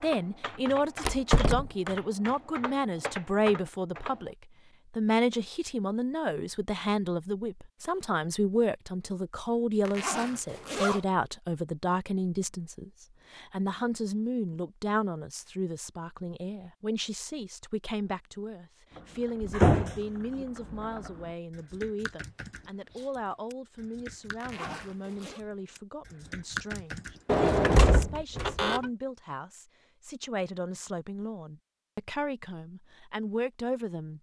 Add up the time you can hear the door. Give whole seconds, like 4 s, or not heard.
3 s.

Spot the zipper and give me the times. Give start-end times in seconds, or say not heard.
9.8-11.1, 24.4-25.4.